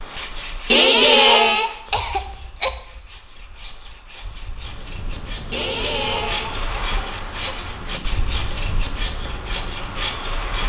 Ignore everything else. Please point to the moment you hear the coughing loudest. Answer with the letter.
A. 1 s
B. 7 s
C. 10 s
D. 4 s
A.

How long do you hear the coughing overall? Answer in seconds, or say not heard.
4 s.